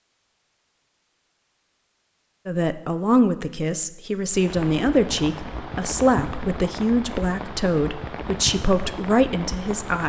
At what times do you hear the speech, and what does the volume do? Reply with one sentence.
The speech can be heard from 2.5 to 10.0 s, at a steady volume.